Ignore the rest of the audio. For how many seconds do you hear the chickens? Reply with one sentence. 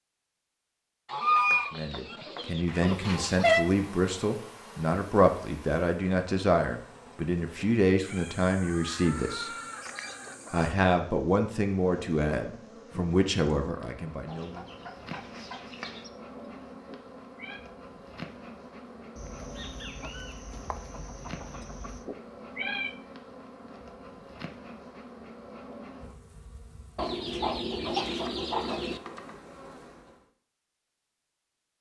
The chickens can be heard for 12 seconds in total.